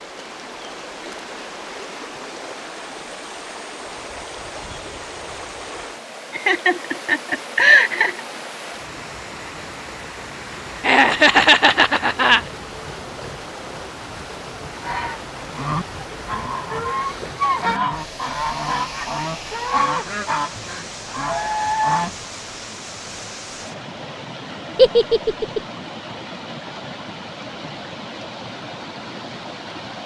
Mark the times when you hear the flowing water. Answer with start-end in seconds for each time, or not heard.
0.0-30.0.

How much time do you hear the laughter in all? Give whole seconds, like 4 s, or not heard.
4 s.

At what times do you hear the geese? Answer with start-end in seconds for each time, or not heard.
14.8-22.1.